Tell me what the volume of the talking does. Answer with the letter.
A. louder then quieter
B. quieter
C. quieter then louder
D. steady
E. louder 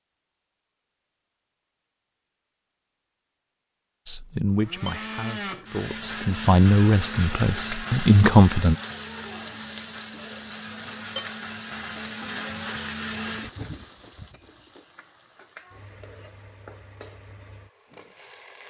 C.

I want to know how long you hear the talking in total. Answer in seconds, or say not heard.
5 s.